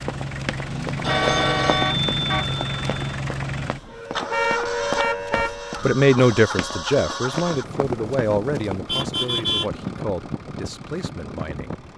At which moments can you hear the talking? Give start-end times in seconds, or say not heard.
5.3-11.8.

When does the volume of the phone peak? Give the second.
1 s.